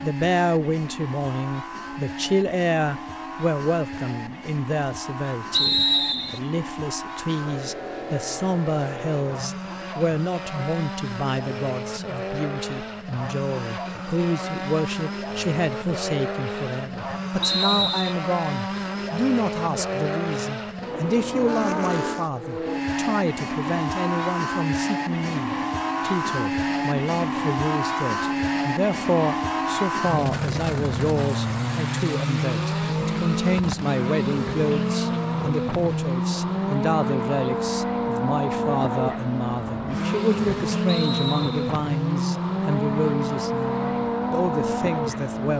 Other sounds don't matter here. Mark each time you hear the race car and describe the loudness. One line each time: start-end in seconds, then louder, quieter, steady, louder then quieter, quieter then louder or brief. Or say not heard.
0.0-45.5 louder.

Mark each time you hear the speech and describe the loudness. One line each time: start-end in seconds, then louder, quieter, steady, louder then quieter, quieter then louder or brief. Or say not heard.
0.0-45.5 steady.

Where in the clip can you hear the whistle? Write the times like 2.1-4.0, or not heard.
5.5-6.4, 17.4-18.1, 40.9-41.8.